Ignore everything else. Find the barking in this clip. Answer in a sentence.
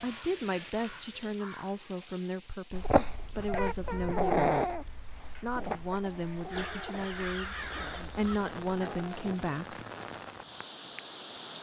The barking can be heard from 2.7 to 9.4 s.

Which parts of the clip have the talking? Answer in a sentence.
You can hear the talking from 0.0 to 4.7 s and from 5.4 to 9.8 s.